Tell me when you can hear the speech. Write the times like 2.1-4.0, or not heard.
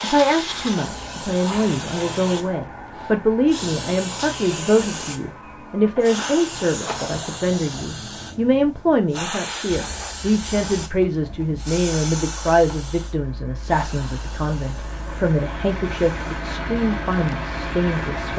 0.0-18.3.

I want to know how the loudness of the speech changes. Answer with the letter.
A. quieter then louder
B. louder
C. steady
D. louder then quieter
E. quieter
C.